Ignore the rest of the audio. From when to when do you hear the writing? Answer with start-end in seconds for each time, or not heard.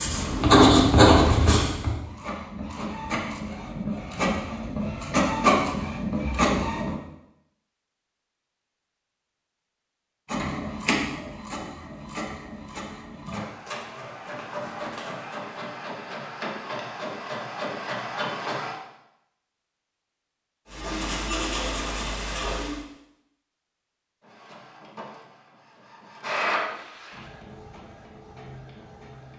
0.0-1.9, 20.7-22.8.